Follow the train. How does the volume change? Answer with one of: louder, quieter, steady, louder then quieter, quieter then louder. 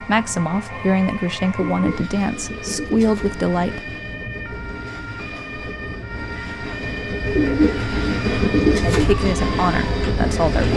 louder.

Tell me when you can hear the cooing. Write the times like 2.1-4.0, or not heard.
1.6-3.3, 7.3-9.1.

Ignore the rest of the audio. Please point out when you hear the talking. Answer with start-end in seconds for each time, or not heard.
0.0-3.9, 8.9-10.7.